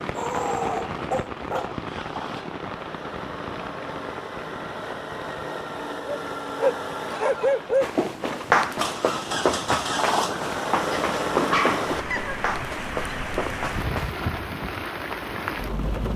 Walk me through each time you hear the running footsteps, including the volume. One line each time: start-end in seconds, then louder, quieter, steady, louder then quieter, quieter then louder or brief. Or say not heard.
7.8-14.2 quieter.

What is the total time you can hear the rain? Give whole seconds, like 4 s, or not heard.
16 s.